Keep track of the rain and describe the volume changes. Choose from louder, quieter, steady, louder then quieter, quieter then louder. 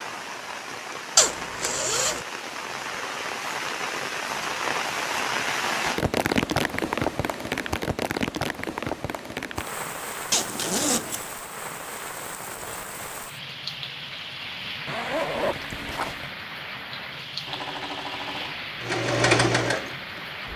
louder then quieter.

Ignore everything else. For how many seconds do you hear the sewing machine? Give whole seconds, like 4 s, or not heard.
3 s.